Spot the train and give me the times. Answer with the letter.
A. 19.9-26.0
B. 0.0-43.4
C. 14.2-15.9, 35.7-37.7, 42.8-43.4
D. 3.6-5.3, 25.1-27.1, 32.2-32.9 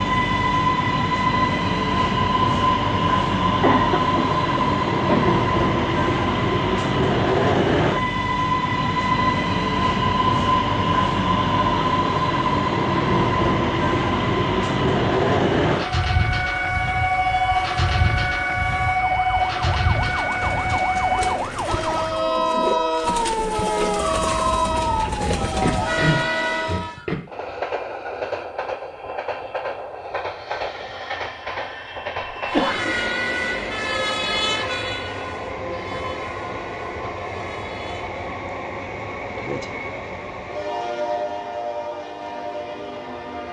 B.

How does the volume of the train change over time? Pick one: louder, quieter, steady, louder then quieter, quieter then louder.
quieter.